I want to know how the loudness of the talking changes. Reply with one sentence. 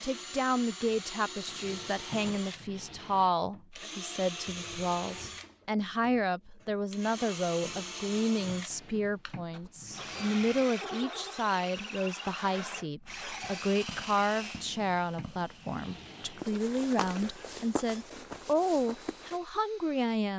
The loudness of the talking stays about the same.